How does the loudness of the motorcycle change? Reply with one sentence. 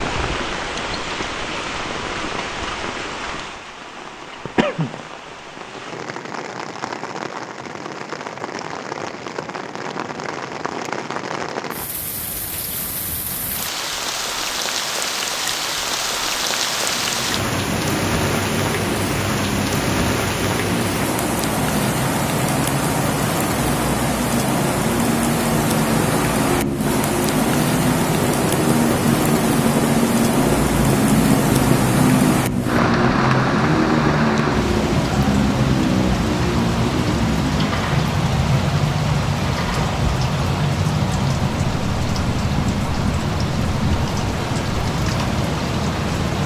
The volume of the motorcycle goes up, then down.